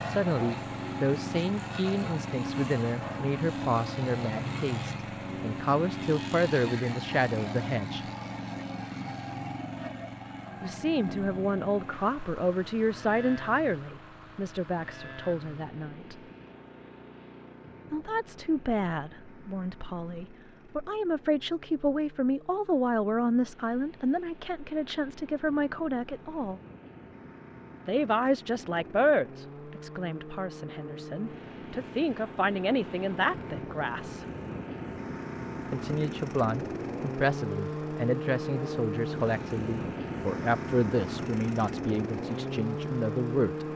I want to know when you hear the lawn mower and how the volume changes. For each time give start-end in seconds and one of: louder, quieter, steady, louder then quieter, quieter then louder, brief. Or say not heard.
0.0-43.7 quieter then louder.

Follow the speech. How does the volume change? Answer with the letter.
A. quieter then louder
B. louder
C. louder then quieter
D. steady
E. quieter
D.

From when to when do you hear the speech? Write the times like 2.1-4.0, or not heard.
0.1-8.1, 10.6-16.1, 17.9-26.6, 27.9-34.2, 35.7-43.6.